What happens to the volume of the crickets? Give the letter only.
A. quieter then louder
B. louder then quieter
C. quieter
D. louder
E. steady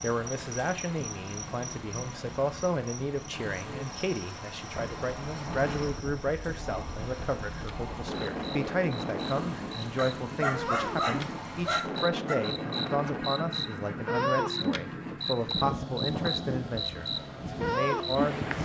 A.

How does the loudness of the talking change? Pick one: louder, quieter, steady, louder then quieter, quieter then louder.
steady.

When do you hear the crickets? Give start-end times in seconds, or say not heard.
0.0-18.5.